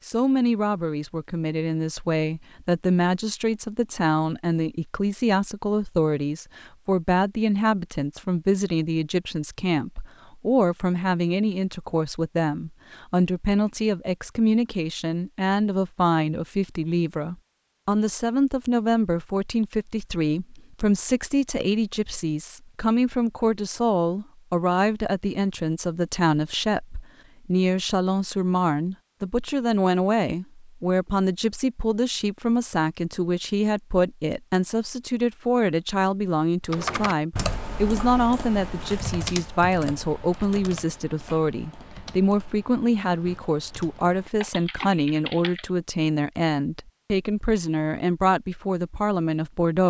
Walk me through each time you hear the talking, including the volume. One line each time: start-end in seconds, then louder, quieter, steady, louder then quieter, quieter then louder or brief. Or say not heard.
0.0-49.8 steady.